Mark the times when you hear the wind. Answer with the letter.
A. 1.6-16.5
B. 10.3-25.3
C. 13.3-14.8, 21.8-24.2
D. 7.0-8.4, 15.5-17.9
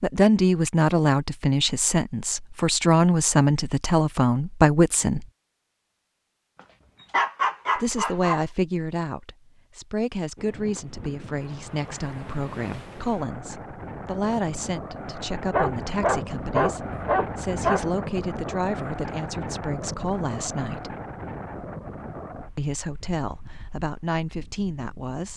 B.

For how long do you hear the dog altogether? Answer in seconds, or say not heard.
4 s.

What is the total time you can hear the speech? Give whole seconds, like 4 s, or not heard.
21 s.